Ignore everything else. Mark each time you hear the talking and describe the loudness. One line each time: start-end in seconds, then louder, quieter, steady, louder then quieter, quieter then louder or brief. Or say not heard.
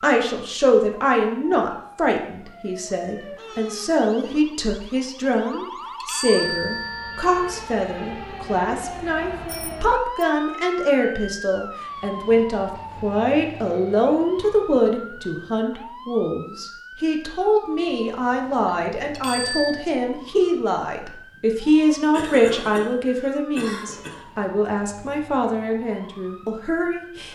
0.0-27.3 steady.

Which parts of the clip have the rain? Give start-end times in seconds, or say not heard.
not heard.